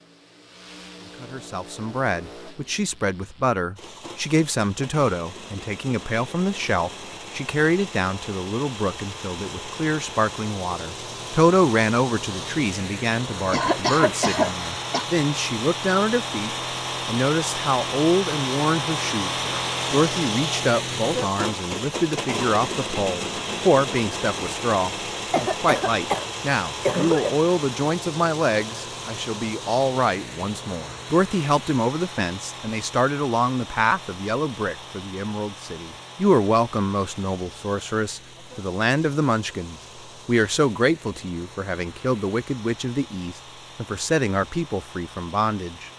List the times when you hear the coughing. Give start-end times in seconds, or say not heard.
13.5-15.1, 25.3-27.4.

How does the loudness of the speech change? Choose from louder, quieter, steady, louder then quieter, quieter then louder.
steady.